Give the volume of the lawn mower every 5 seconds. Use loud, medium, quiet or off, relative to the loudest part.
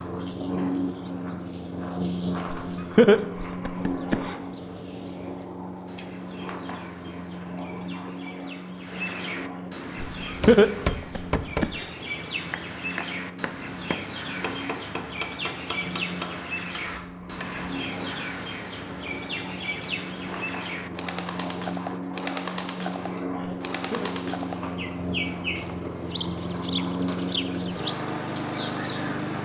loud, medium, medium, medium, loud, loud.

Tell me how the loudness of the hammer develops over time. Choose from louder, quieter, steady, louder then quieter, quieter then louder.
quieter.